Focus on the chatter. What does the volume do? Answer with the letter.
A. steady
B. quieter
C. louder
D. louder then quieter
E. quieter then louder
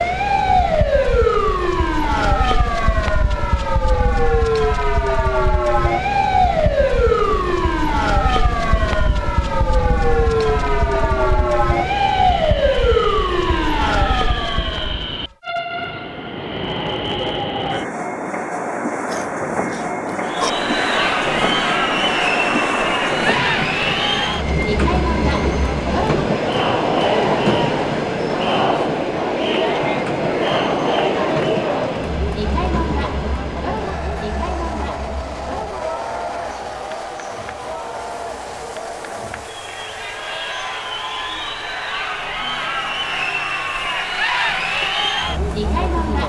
E.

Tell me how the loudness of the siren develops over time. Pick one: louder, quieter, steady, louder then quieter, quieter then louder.
steady.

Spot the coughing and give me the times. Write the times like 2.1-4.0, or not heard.
19.1-20.5.